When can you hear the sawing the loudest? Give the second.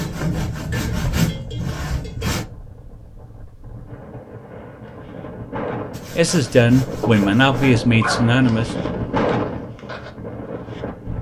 1 s.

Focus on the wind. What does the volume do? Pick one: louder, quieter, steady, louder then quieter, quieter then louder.
louder.